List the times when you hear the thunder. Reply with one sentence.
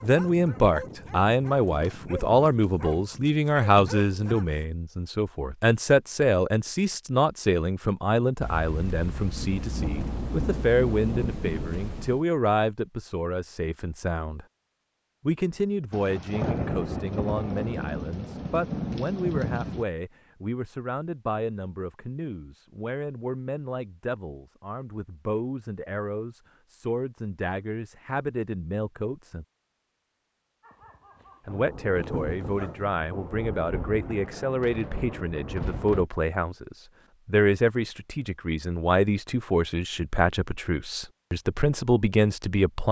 The thunder can be heard from 8.4 to 12.2 s, from 15.9 to 19.9 s and from 31.4 to 36.1 s.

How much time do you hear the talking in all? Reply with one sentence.
You can hear the talking for 40 seconds altogether.